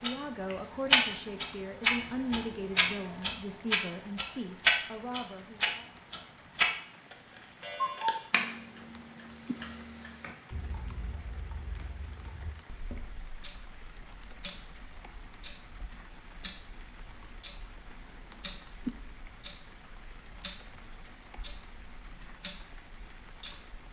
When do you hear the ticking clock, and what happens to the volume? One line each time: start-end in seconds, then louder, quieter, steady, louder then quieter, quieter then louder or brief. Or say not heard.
0.0-23.8 quieter.